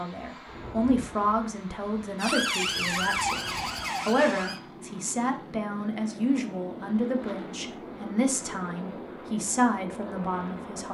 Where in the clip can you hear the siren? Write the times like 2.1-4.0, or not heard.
2.1-4.6.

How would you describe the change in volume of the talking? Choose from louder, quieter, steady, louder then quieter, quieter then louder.
steady.